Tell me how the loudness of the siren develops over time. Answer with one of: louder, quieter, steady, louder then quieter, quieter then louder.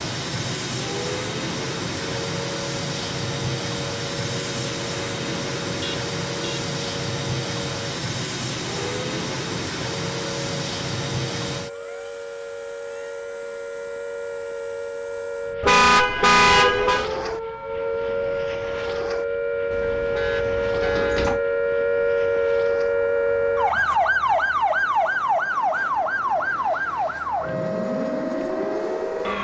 louder.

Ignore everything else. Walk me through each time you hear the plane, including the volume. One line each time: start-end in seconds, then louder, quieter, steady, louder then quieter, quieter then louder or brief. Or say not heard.
0.0-29.3 quieter.